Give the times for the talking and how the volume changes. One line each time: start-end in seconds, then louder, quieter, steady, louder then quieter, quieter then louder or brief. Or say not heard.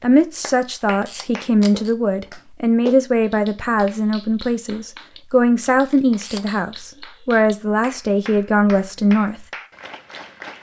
0.0-9.4 steady.